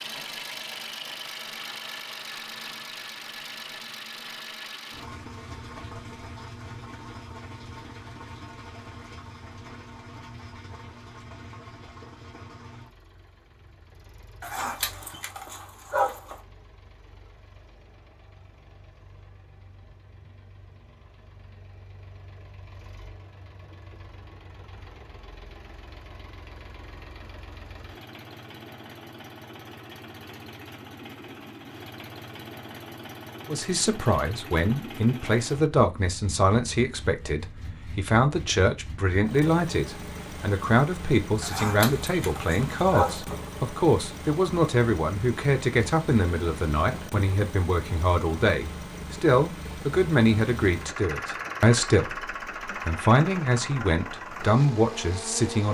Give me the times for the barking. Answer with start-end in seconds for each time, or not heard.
14.4-16.4, 41.4-43.4.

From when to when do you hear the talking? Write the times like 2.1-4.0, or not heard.
33.5-55.6.